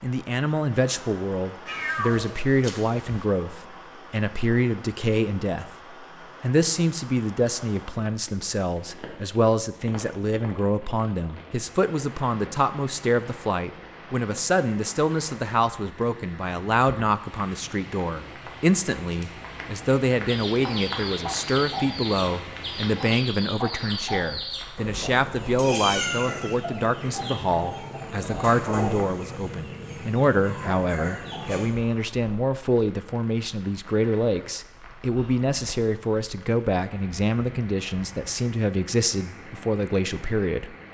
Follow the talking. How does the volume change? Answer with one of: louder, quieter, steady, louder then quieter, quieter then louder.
steady.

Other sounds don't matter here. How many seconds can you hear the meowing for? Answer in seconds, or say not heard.
3 s.